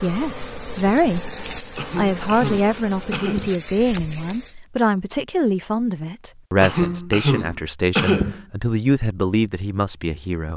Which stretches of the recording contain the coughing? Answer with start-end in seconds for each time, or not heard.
1.8-3.6, 6.6-8.4.